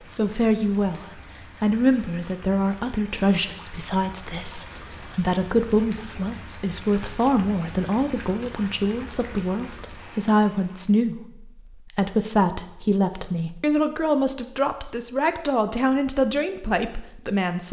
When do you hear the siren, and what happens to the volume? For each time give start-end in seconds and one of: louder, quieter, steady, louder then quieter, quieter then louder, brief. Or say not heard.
not heard.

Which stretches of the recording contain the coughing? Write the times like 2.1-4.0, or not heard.
not heard.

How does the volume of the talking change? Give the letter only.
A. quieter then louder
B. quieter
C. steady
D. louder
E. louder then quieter
C.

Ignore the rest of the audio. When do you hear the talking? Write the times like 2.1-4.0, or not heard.
0.1-17.6.